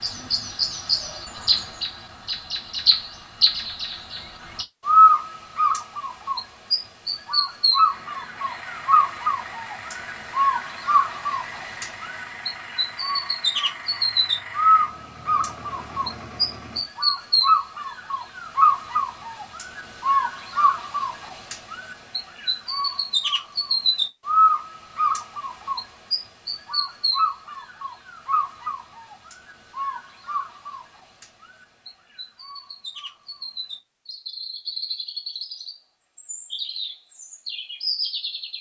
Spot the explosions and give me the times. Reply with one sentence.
You can't hear the explosions here.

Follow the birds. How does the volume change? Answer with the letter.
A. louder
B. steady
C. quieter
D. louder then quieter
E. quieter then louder
C.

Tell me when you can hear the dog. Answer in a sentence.
You can't hear the dog here.